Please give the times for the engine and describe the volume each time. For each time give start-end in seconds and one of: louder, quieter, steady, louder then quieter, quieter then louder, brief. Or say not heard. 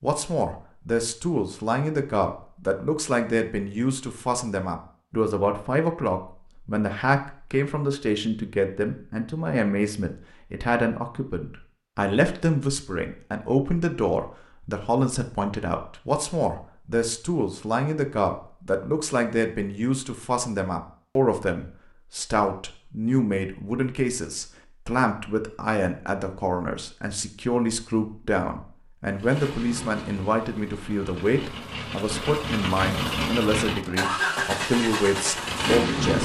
29.1-36.1 louder.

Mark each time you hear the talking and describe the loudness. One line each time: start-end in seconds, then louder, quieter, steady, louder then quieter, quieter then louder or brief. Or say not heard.
0.0-36.1 steady.